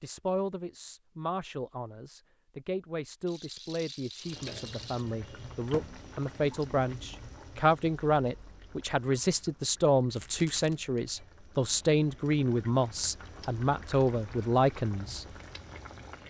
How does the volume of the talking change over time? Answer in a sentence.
The volume of the talking goes up.